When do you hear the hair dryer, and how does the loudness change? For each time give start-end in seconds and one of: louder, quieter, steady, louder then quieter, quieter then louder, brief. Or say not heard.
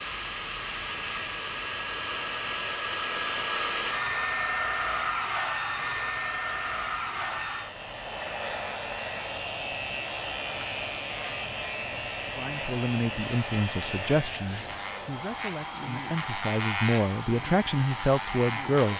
0.0-18.9 quieter.